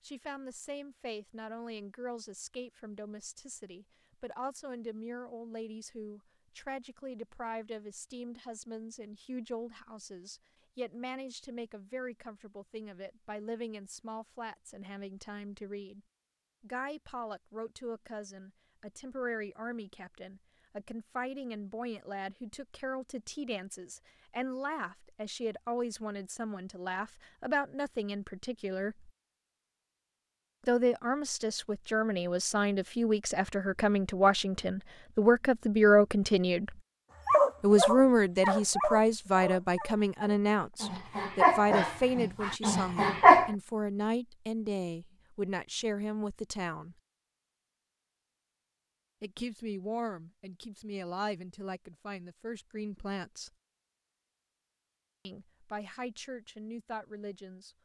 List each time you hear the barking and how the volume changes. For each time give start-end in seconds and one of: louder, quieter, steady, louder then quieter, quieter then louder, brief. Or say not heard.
37.2-43.5 quieter then louder.